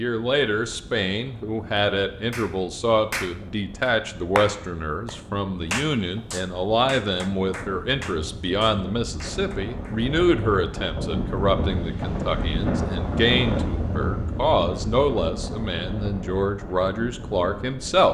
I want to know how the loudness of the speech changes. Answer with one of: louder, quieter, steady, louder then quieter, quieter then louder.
steady.